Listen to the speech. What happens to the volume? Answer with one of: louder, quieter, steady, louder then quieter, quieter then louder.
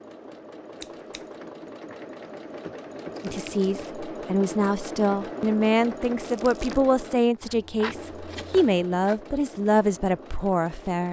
steady.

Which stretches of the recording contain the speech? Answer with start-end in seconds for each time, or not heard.
3.2-11.0.